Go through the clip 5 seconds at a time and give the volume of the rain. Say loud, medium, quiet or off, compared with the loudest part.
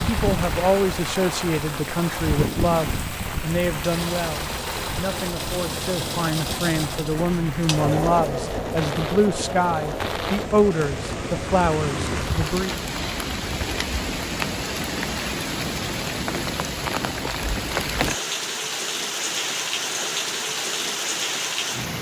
loud, medium, loud, loud, loud.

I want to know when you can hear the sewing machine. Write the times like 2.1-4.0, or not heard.
0.0-12.6.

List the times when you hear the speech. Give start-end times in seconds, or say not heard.
0.1-12.8.